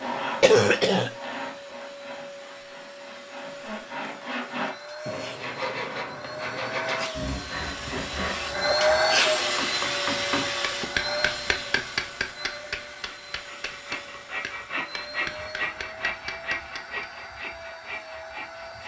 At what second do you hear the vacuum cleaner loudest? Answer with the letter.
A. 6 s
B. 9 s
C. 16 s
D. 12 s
B.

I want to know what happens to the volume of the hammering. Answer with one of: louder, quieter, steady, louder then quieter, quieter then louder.
quieter.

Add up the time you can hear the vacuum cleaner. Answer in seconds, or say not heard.
19 s.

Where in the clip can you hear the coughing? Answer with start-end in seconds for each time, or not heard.
0.4-1.1.